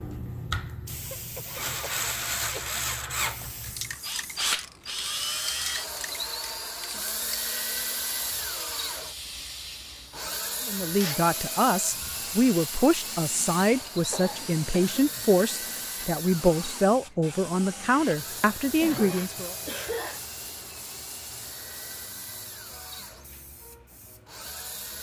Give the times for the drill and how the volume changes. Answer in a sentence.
The drill can be heard from 0.0 to 24.9 s, getting quieter.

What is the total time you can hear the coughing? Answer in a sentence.
You can hear the coughing for 4 seconds altogether.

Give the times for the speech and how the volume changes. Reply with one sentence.
The speech can be heard from 10.7 to 19.6 s, at a steady volume.